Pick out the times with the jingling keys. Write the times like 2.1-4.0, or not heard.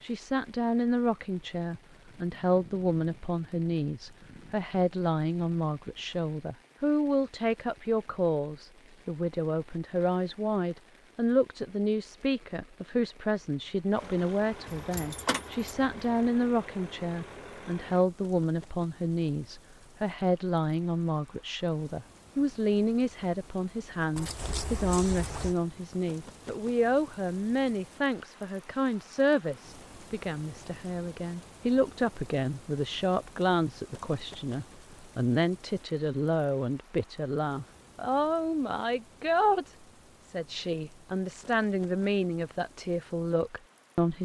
14.7-16.3, 24.1-25.6.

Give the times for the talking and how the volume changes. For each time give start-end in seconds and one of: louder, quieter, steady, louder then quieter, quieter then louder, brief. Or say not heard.
0.0-44.1 steady.